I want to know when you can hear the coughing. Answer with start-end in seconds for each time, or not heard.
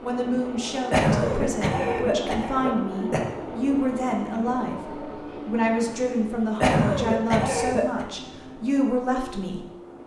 0.9-3.3, 6.6-8.1.